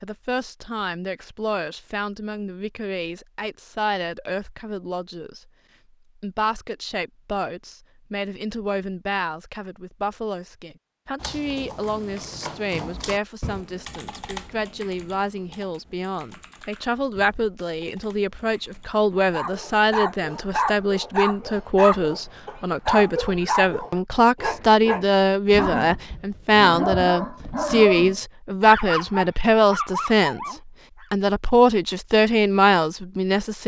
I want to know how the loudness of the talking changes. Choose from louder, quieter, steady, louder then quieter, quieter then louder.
louder.